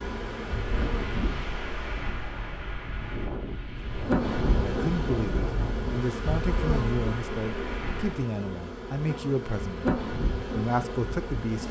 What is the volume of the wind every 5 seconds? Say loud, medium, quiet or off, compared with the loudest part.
loud, loud, off.